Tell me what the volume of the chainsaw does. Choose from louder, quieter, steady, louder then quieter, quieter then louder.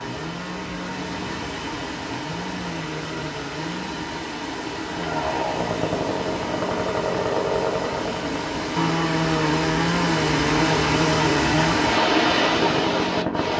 louder.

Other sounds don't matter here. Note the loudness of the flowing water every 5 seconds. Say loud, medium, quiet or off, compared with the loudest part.
medium, medium, loud.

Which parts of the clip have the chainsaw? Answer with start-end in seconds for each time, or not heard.
0.0-13.5.